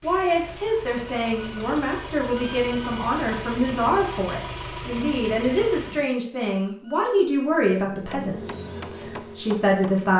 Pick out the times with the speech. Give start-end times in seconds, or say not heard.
0.0-10.1.